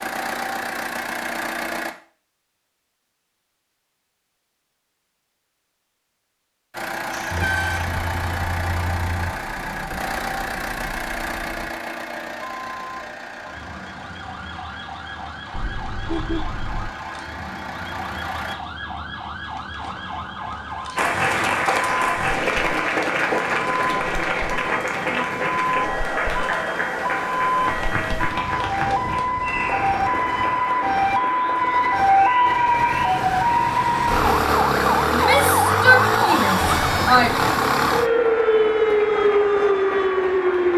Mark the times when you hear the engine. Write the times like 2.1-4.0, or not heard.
0.0-1.9, 6.7-18.6.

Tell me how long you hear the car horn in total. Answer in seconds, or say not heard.
4 s.